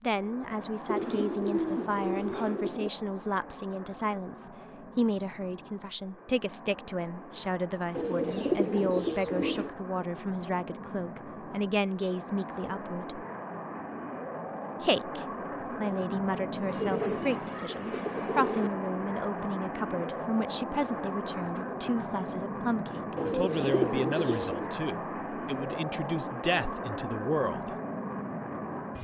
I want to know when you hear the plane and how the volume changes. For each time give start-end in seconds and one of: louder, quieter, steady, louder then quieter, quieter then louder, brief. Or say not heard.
0.0-29.0 louder.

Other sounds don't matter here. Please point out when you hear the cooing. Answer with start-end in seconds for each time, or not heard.
0.8-2.9, 7.9-9.7, 16.6-18.7, 23.1-24.7.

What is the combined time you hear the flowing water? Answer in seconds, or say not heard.
not heard.